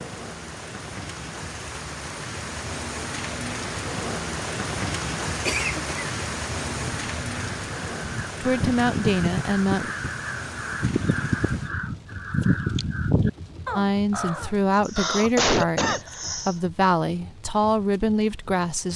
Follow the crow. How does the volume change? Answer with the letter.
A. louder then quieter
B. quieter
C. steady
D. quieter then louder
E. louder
E.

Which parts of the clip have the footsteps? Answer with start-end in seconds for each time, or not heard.
not heard.